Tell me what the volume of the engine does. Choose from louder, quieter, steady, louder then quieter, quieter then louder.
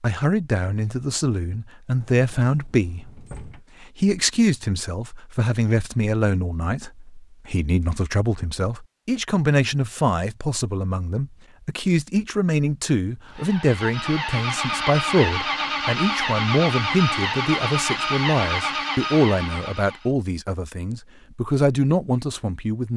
steady.